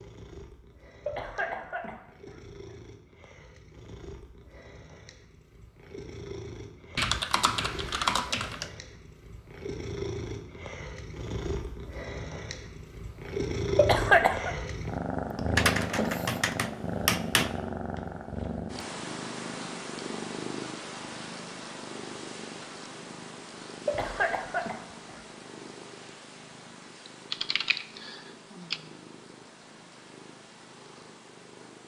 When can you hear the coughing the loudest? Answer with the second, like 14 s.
14 s.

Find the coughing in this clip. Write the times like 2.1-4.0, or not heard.
1.1-2.5, 13.8-14.5, 23.9-25.1.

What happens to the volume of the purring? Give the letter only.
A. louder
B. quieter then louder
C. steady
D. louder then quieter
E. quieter
D.